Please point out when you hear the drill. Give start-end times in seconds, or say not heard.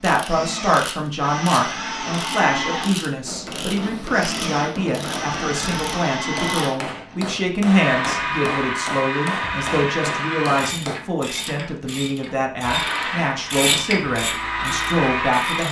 0.1-10.7, 12.6-15.6.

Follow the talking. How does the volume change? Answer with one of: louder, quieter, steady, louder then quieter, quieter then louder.
steady.